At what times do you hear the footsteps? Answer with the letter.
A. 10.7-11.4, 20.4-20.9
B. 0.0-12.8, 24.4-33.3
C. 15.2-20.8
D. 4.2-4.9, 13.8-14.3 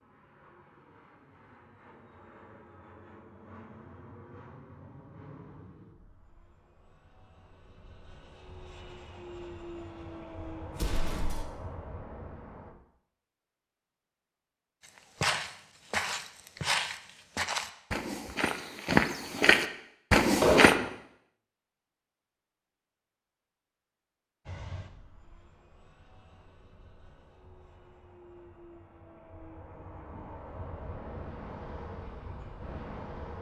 C.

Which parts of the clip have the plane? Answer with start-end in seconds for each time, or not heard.
0.0-12.8, 24.4-33.3.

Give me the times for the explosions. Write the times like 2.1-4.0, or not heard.
10.7-11.4, 20.4-20.9.